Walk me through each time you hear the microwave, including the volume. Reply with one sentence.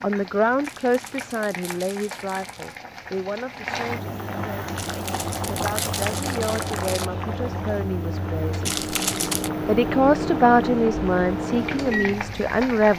You can hear the microwave from 4.8 to 12.8 s, getting louder.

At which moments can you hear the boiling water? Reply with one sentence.
You can hear the boiling water from 0.0 to 12.9 s.